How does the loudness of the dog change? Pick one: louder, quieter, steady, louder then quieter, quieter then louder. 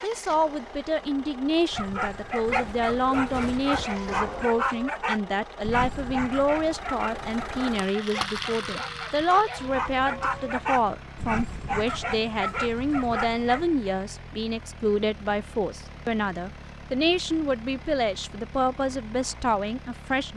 quieter then louder.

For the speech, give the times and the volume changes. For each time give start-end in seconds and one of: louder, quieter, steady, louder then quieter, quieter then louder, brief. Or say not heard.
0.0-20.3 steady.